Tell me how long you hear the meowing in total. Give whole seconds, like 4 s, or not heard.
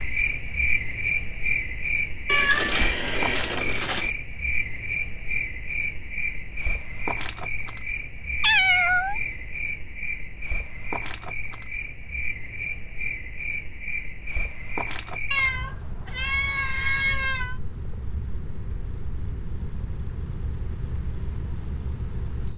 5 s.